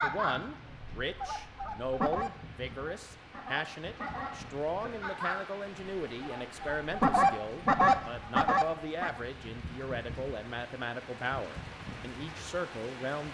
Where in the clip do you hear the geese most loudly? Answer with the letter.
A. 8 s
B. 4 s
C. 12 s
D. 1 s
A.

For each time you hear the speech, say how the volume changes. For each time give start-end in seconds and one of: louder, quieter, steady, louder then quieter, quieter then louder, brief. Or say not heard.
0.0-13.3 steady.